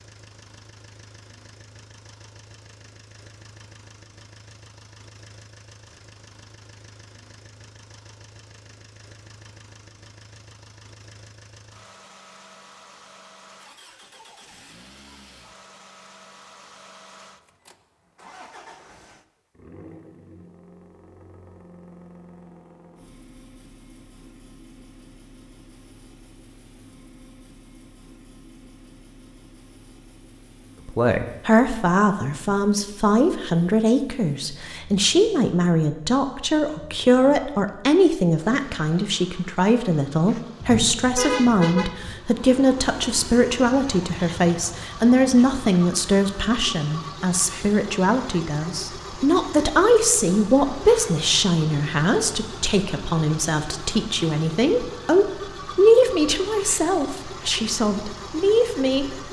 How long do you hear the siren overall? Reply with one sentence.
The siren can't be heard in this clip.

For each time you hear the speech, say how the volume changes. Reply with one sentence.
You can hear the speech from 30.9 to 59.2 s, at a steady volume.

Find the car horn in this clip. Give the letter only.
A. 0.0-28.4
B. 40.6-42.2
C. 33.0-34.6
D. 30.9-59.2
B.